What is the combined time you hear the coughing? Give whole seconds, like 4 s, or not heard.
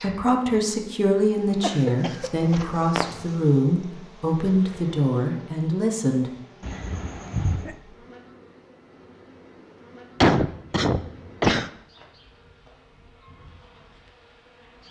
4 s.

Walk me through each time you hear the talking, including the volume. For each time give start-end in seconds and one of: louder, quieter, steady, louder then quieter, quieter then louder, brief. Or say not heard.
0.0-6.3 steady.